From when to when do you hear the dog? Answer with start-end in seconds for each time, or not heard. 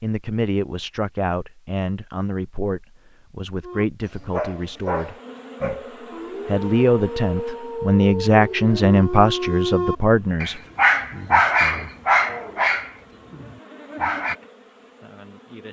3.6-14.3.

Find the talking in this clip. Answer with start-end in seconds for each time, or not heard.
0.0-5.8, 6.5-10.6.